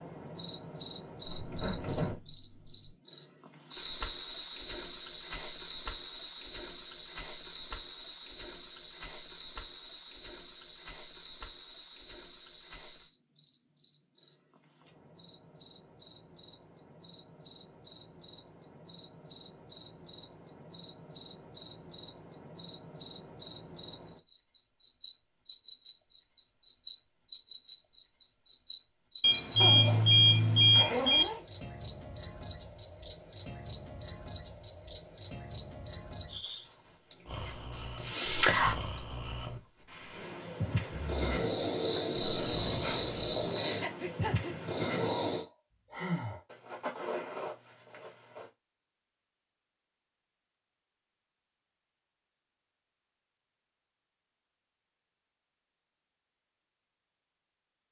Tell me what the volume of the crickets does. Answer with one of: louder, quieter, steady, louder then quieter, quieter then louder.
quieter then louder.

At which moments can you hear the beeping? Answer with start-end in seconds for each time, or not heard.
29.2-31.2.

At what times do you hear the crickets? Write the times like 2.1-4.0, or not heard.
0.0-45.5.